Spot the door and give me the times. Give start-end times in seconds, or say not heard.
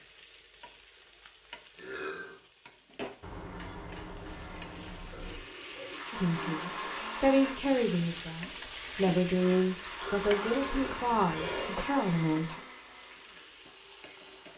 3.2-5.5, 10.9-11.7.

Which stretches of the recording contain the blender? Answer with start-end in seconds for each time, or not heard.
5.2-7.6, 9.3-14.5.